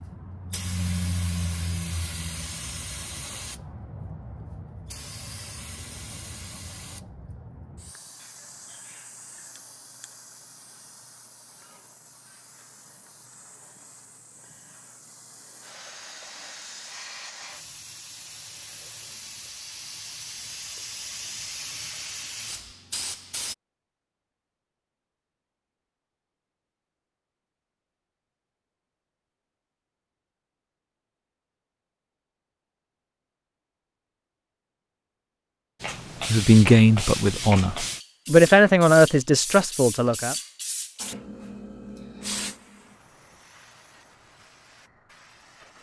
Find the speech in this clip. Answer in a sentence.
You can hear the speech from 36.2 to 40.4 s.